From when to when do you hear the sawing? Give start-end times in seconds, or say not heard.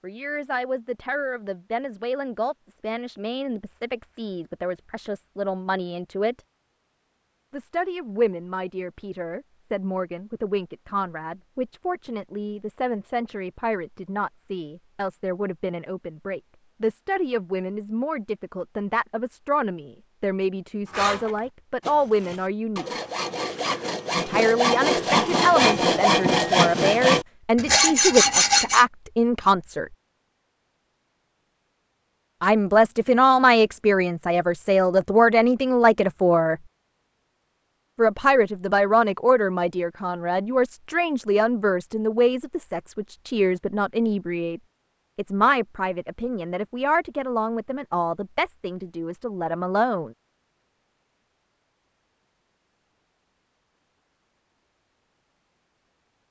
20.9-28.9.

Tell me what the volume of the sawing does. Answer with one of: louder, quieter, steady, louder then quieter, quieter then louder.
louder.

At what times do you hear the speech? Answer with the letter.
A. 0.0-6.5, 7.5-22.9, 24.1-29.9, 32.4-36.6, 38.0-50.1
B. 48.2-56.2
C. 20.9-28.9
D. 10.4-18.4
A.